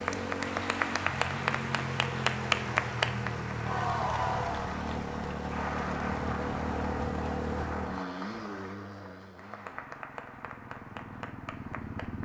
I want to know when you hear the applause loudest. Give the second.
3 s.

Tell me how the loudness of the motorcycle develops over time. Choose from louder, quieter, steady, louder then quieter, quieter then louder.
quieter.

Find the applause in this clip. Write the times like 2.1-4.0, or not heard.
0.0-12.1.